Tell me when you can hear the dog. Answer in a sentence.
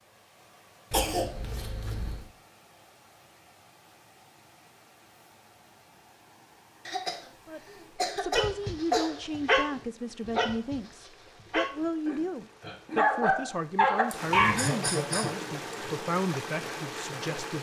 You can hear the dog from 8.3 to 14.6 s.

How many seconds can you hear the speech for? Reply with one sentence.
You can hear the speech for 10 seconds altogether.